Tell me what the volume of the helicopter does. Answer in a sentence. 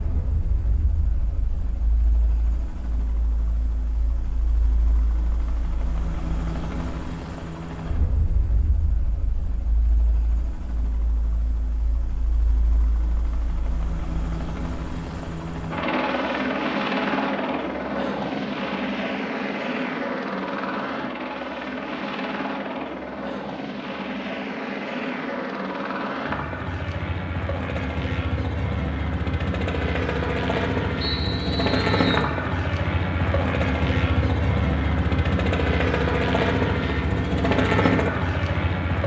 The volume of the helicopter goes up.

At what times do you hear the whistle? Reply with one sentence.
The whistle can be heard from 31.0 to 32.3 s.